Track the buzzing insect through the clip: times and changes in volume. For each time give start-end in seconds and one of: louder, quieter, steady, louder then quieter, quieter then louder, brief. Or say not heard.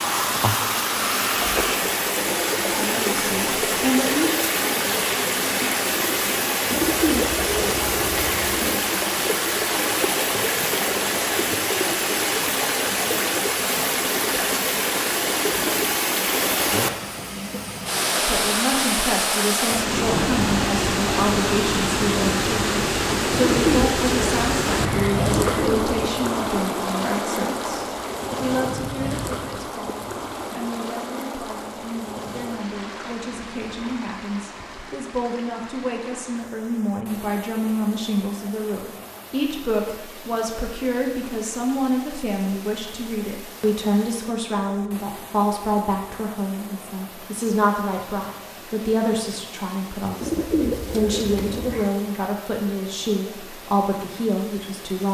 not heard.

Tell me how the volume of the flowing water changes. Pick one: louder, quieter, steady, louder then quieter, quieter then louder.
quieter.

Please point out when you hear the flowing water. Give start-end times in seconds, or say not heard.
0.0-55.0.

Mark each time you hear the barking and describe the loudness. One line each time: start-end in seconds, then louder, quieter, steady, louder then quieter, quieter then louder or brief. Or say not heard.
not heard.